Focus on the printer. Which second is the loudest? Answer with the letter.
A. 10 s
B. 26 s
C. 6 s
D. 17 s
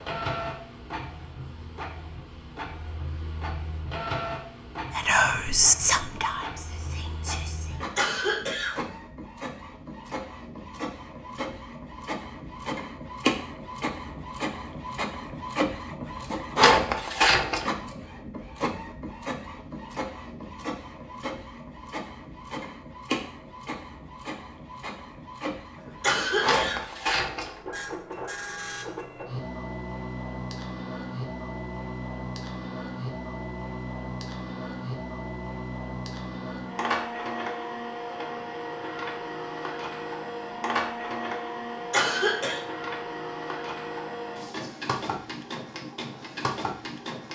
D.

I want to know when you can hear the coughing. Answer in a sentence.
The coughing can be heard from 7.8 to 8.8 s, from 26.0 to 26.8 s and from 41.9 to 42.6 s.